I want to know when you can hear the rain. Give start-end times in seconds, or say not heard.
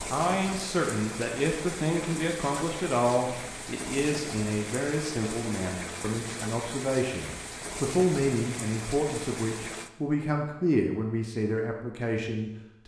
0.0-9.9.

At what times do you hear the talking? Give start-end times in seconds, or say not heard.
0.1-12.8.